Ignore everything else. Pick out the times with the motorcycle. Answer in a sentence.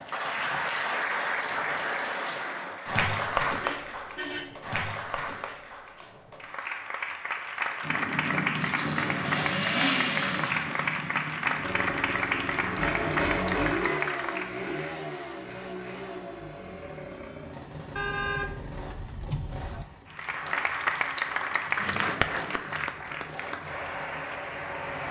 You can hear the motorcycle from 7.8 to 25.0 s.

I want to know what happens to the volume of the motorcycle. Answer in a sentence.
The loudness of the motorcycle goes down.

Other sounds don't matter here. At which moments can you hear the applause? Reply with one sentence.
The applause can be heard from 0.0 to 14.7 s and from 20.1 to 25.0 s.